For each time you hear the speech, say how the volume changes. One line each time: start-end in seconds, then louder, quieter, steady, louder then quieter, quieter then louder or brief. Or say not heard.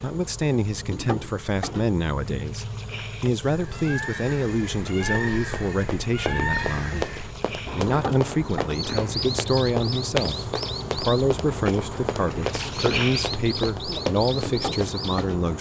0.0-15.5 steady.